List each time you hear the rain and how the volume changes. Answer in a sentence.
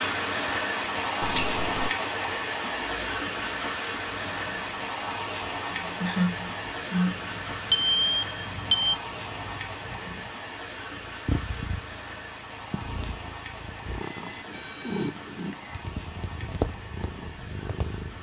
You can hear the rain from 0.0 to 18.1 s, getting quieter.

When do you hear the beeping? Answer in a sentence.
You can hear the beeping from 1.2 to 1.9 s, from 7.7 to 8.9 s and from 14.0 to 15.8 s.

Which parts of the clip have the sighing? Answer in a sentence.
You can hear the sighing from 6.0 to 7.2 s.